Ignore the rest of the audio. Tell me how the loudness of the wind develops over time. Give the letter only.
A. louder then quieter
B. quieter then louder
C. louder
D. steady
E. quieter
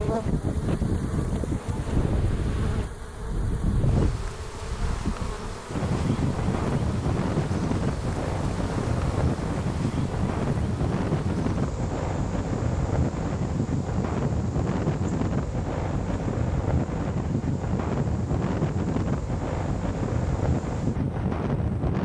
D.